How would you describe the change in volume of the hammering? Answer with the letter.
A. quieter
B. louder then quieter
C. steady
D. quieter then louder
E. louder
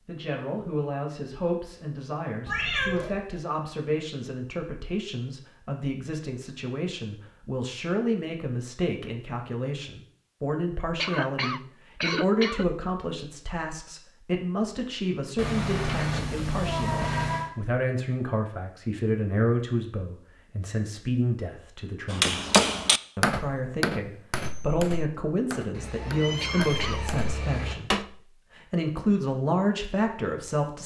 A.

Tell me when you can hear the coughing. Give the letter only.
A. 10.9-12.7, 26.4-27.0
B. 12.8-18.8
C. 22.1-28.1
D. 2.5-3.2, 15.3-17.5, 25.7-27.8
A.